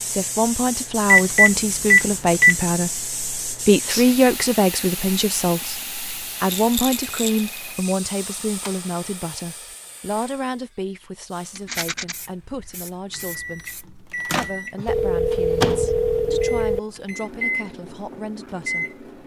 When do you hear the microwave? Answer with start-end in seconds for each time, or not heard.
13.1-19.2.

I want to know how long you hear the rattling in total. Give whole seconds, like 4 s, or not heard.
2 s.